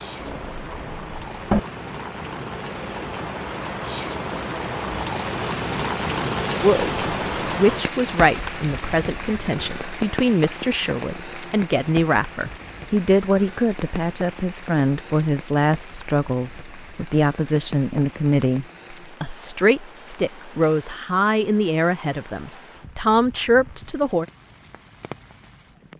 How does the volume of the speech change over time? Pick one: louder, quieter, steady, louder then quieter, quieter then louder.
steady.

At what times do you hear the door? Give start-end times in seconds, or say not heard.
0.2-1.6.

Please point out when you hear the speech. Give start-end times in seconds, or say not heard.
6.6-24.2.